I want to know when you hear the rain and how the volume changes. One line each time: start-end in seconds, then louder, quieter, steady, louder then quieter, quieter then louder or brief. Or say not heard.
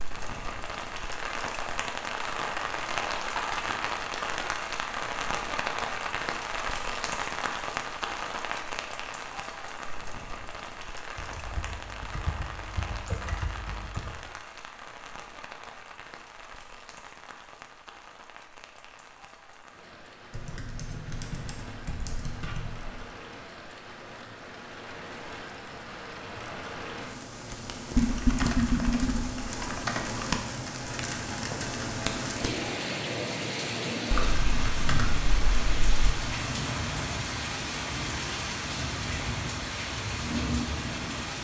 0.0-41.3 quieter then louder.